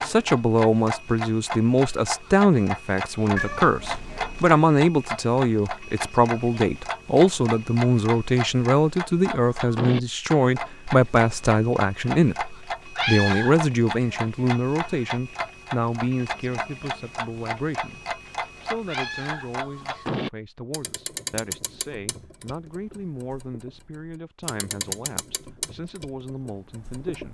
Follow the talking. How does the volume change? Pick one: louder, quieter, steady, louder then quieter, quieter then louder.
quieter.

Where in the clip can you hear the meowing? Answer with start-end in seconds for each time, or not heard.
3.4-4.5, 12.9-14.1, 18.9-20.1.